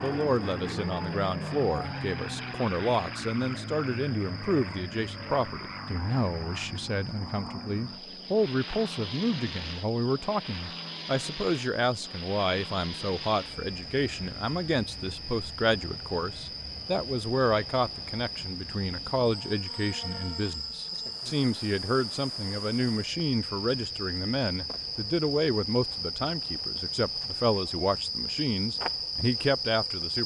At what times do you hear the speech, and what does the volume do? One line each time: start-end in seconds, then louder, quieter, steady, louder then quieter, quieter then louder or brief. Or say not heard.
0.0-30.2 steady.